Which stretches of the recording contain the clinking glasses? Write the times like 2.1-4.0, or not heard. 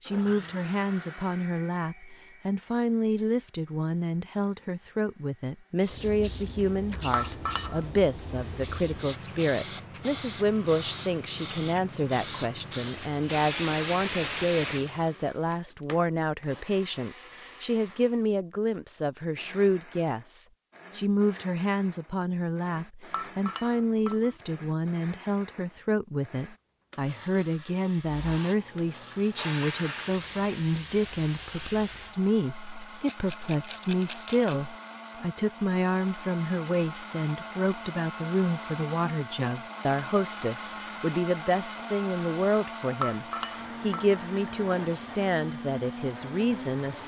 7.1-7.9, 23.1-24.4, 43.0-44.2.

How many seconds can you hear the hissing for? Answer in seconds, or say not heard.
13 s.